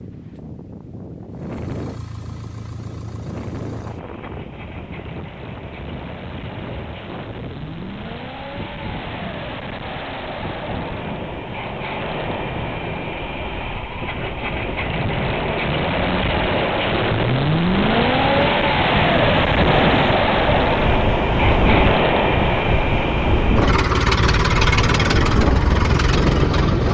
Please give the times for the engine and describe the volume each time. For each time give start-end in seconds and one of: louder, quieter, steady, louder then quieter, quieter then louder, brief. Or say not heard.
1.3-26.8 louder.